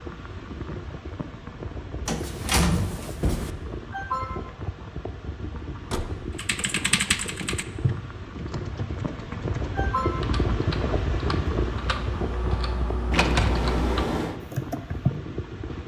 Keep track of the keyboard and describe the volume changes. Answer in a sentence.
The volume of the keyboard goes down, then up.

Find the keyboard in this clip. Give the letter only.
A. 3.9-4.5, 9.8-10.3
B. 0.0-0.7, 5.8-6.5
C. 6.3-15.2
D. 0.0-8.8
C.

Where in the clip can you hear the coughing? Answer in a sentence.
You can hear the coughing from 3.9 to 4.5 s and from 9.8 to 10.3 s.